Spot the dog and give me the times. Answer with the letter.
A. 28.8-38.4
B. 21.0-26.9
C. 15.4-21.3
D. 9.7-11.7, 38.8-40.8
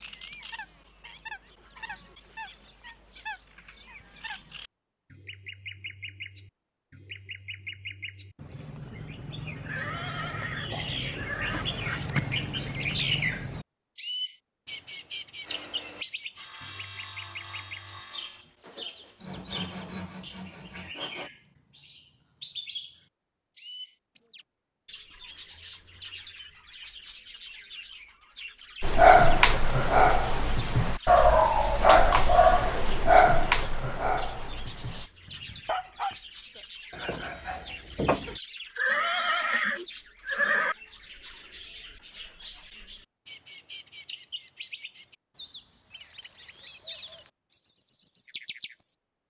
A.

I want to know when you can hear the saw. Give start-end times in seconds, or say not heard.
15.4-21.3.